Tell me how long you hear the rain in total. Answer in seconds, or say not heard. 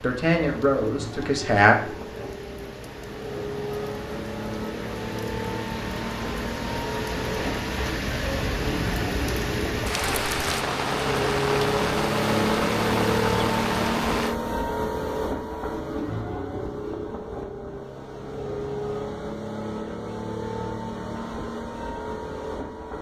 14 s.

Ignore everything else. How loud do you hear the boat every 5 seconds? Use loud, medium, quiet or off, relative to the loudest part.
medium, medium, loud, medium, medium.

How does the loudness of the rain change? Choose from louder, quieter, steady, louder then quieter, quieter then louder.
louder.